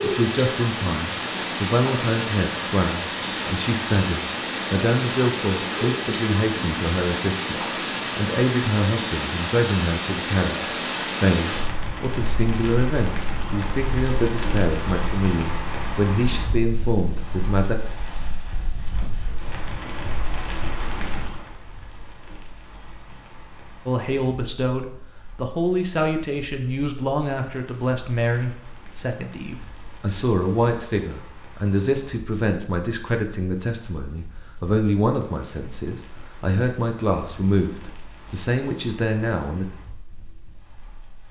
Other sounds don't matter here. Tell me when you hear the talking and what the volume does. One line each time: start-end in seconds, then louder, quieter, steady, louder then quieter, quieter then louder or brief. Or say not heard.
0.0-17.8 steady
23.9-39.6 steady.